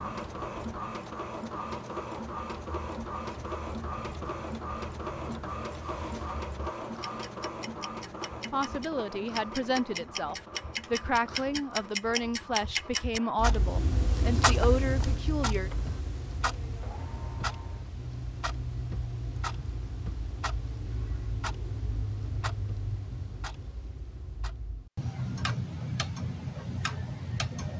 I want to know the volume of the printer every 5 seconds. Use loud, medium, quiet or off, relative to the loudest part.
loud, loud, medium, quiet, off, off.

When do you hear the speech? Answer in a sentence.
You can hear the speech from 8.5 to 15.7 s.